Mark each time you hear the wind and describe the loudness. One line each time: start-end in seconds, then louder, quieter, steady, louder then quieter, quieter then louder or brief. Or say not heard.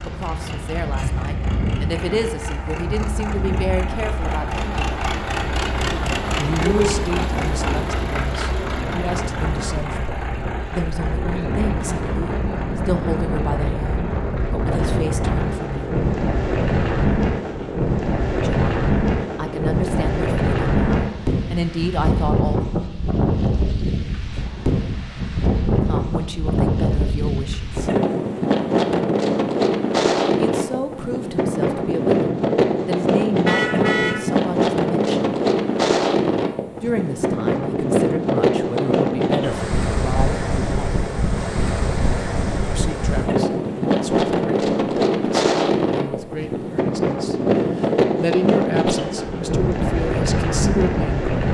0.0-51.5 louder.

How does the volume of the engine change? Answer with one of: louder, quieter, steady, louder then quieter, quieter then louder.
louder then quieter.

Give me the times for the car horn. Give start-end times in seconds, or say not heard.
6.6-7.0, 33.5-34.2.